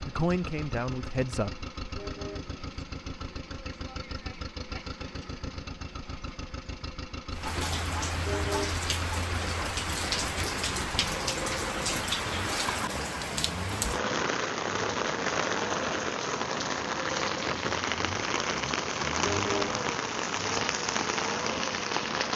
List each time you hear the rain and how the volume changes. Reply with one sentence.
You can hear the rain from 7.3 to 22.3 s, at a steady volume.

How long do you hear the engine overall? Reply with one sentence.
The engine can be heard for 22 seconds in total.